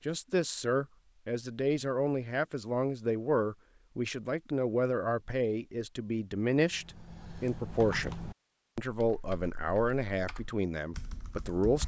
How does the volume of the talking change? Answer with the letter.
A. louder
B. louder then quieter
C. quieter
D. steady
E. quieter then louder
D.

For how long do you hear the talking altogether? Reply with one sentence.
The talking can be heard for 11 seconds in total.